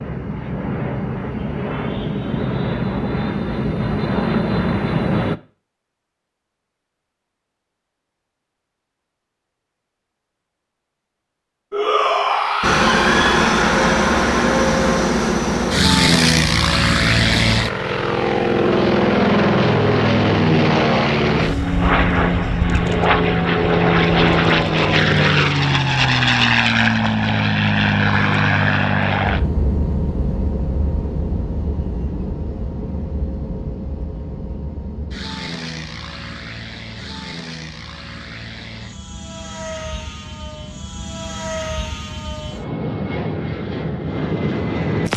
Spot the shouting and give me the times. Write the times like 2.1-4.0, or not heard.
11.7-13.6.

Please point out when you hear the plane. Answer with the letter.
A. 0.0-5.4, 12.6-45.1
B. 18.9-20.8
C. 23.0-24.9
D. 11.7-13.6
A.